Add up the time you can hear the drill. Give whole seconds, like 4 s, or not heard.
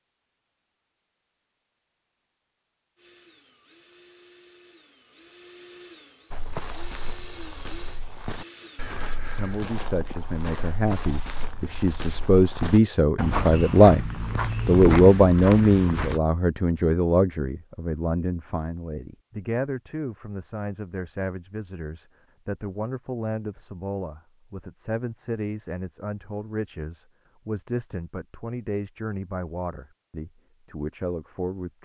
6 s.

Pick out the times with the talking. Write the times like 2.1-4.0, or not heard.
9.3-14.1, 14.7-31.7.